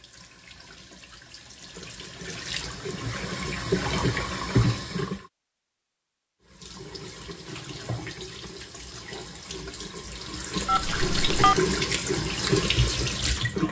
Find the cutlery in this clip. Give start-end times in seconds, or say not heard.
not heard.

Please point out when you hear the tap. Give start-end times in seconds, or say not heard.
0.0-5.2, 6.5-13.6.